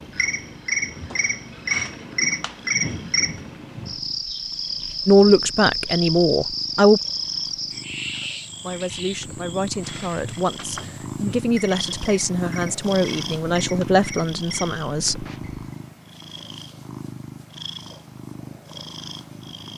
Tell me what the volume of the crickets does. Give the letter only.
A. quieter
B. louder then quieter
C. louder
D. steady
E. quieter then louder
A.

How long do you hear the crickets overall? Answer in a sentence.
The crickets can be heard for 16 seconds in total.